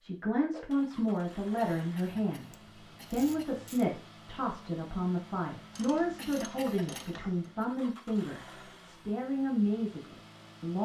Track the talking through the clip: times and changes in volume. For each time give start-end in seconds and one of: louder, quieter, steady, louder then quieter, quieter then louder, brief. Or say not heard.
0.0-10.8 steady.